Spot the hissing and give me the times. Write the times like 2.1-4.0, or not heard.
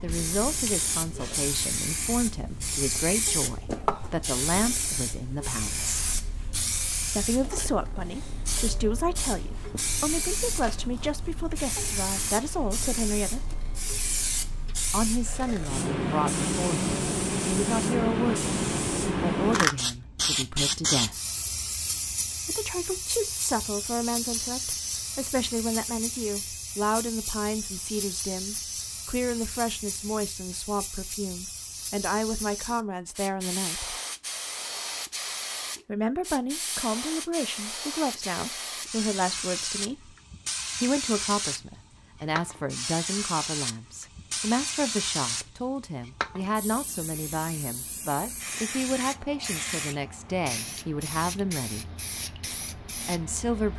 0.0-53.7.